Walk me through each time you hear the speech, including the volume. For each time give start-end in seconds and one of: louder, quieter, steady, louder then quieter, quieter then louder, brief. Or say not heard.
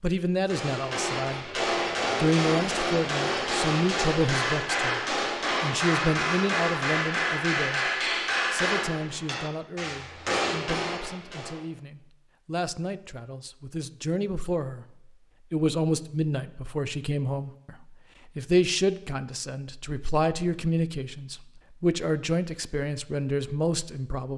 0.0-24.3 quieter then louder.